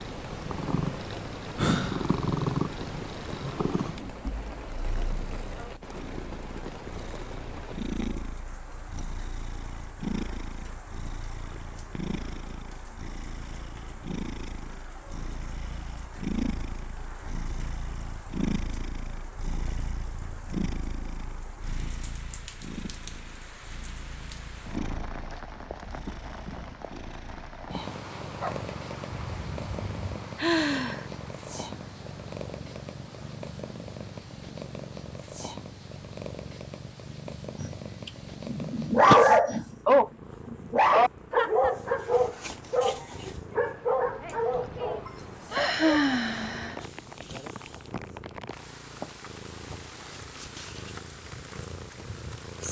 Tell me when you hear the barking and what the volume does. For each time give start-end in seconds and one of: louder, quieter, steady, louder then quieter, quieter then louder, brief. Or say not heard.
28.4-30.1 brief
37.6-46.1 quieter.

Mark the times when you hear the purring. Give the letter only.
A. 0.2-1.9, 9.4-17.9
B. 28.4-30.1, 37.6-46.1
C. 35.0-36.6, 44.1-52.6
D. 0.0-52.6
D.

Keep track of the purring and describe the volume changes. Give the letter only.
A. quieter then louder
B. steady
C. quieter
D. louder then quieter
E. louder
C.